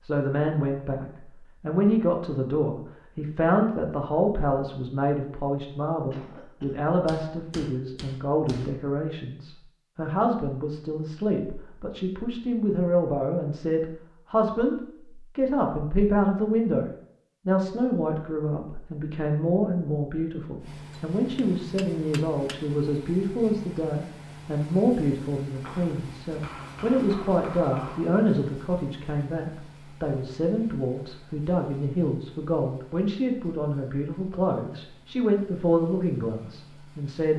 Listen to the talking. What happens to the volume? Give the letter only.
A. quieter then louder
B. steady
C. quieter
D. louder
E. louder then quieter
B.